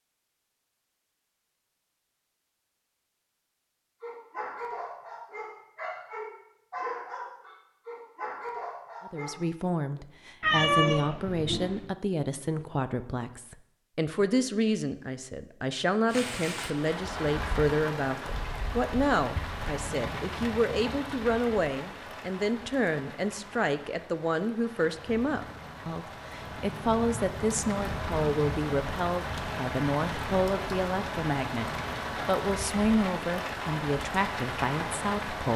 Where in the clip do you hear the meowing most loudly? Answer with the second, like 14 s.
11 s.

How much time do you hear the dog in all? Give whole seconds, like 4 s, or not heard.
5 s.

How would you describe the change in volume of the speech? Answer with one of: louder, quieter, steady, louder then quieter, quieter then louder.
steady.